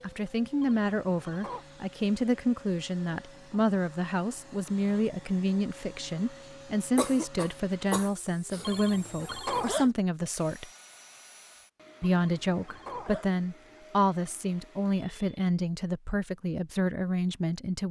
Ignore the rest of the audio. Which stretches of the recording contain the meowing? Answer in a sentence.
The meowing can't be heard in this clip.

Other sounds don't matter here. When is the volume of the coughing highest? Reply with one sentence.
The volume of the coughing peaks at 7 seconds.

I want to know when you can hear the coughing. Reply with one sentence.
You can hear the coughing from 7.0 to 8.7 s.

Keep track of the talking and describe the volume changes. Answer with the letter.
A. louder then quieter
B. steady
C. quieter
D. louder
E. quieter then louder
B.